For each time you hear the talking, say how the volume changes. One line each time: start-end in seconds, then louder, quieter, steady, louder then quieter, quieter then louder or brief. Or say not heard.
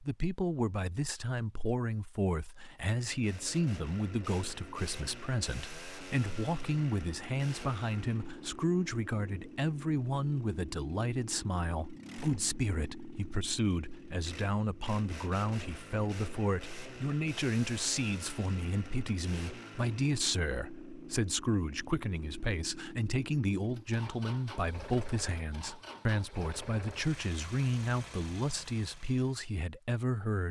0.0-30.4 steady.